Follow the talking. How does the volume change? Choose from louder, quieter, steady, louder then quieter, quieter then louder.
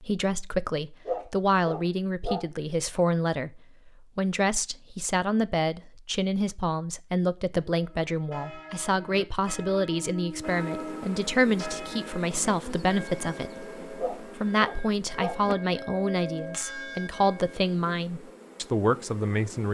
steady.